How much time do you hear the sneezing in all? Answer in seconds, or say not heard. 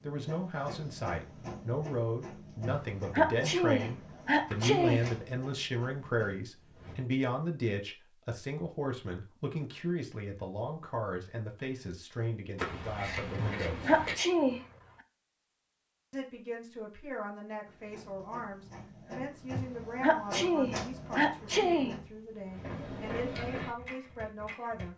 6 s.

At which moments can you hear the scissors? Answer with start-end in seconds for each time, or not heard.
4.5-5.2, 12.6-14.2.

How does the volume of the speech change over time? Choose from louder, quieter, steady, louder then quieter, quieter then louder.
quieter.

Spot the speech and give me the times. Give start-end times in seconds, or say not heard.
0.0-13.9, 16.1-24.9.